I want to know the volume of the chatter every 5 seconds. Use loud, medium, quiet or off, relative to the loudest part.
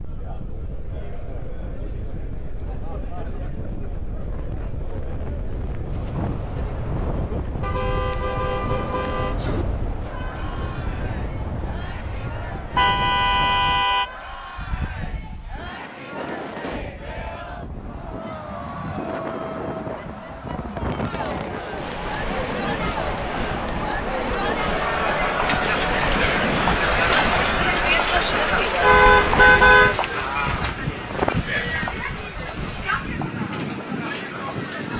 quiet, quiet, quiet, quiet, medium, loud, medium.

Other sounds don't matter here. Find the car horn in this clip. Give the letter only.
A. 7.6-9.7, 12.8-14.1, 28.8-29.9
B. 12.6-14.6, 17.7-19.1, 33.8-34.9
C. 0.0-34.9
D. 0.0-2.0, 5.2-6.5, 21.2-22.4
A.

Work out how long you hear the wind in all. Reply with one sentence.
The wind can be heard for 35 seconds in total.